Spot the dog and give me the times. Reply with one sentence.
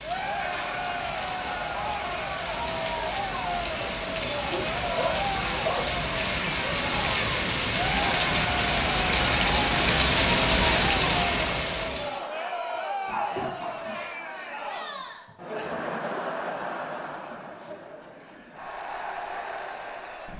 The dog can be heard from 4.5 to 6.0 s and from 13.1 to 14.1 s.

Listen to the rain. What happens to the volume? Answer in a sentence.
The volume of the rain goes up.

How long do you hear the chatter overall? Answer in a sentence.
The chatter can be heard for 20 seconds in total.